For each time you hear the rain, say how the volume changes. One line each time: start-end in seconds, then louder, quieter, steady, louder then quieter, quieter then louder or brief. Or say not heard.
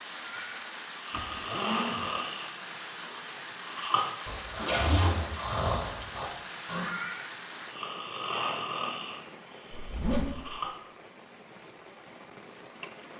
0.0-13.1 quieter.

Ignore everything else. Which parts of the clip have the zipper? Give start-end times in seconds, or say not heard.
1.1-2.0, 4.6-5.3, 9.7-10.6.